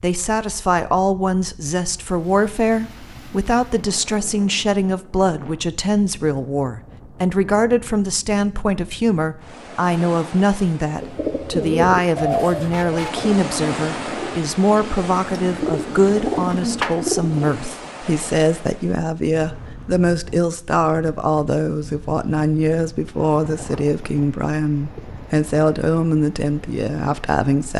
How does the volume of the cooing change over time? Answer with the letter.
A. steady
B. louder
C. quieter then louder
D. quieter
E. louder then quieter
C.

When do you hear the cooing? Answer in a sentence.
The cooing can be heard from 10.8 to 17.8 s.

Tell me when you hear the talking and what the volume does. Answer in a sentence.
You can hear the talking from 0.0 to 27.7 s, at a steady volume.